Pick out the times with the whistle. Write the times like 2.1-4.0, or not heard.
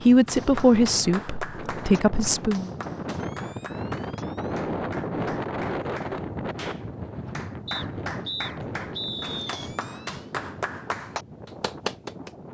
7.7-9.6.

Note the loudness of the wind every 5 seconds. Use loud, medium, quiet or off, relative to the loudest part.
loud, loud, medium.